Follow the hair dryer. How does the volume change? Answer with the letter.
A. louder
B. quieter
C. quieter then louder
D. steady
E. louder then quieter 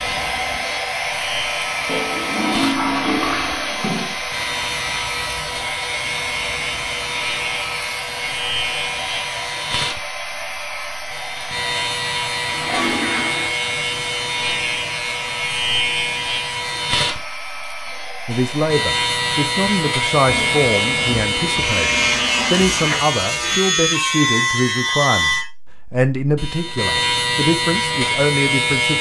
B.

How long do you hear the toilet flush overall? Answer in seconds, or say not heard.
6 s.